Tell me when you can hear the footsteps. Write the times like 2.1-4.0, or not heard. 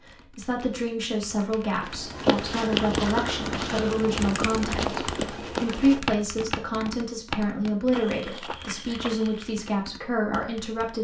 1.8-9.7.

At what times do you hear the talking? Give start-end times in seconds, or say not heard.
0.1-11.0.